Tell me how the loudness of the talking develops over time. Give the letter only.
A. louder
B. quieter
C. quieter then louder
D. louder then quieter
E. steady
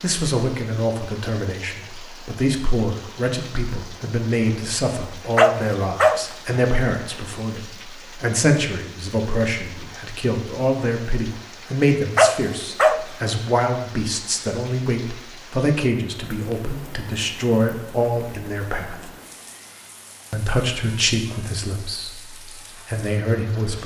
E.